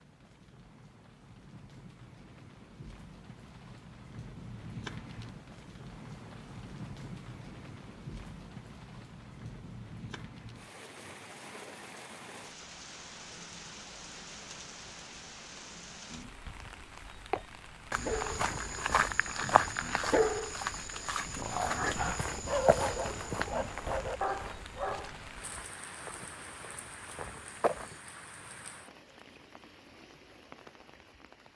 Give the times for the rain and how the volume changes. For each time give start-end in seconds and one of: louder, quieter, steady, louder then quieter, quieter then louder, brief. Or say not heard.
0.0-31.5 steady.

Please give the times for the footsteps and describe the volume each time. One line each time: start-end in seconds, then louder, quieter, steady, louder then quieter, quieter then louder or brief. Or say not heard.
17.3-28.0 quieter.